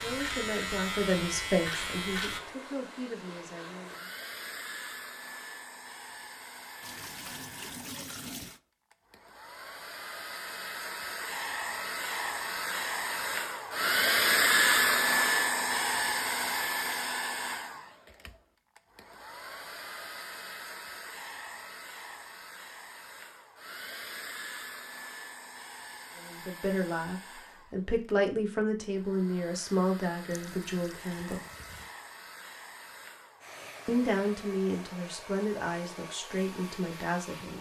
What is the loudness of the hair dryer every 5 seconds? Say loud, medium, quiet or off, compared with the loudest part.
quiet, quiet, loud, loud, quiet, quiet, quiet, quiet.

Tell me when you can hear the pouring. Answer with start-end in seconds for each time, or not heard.
6.8-8.6, 30.3-31.9.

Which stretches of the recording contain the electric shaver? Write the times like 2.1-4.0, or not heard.
0.0-2.4.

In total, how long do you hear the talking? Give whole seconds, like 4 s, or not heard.
13 s.